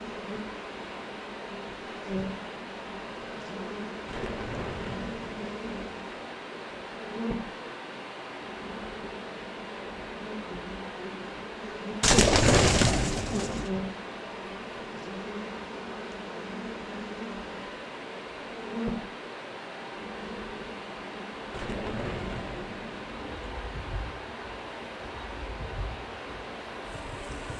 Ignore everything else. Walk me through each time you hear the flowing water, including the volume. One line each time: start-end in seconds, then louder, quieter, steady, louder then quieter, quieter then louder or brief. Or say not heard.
0.0-27.5 steady.